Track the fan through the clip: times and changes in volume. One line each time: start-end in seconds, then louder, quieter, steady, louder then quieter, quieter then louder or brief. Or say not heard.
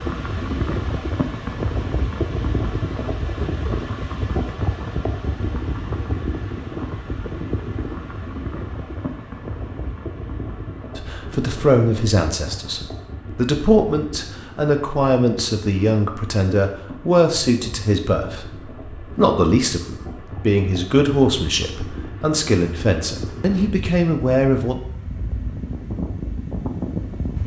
0.0-27.4 quieter then louder.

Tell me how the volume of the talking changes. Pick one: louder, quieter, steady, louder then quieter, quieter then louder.
steady.